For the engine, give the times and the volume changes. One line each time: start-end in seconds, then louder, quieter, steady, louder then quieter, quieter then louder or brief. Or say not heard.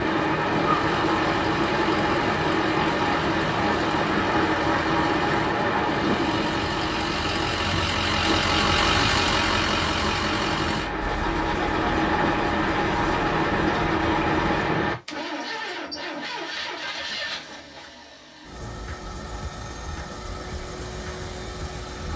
0.0-22.1 louder then quieter.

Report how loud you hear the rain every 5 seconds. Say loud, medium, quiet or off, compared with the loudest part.
loud, loud, loud, off, off.